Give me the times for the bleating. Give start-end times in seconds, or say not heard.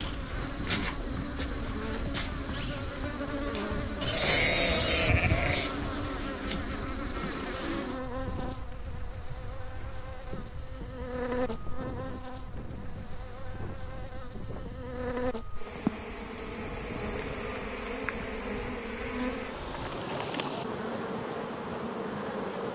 4.0-5.7.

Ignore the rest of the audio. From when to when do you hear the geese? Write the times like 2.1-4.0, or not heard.
not heard.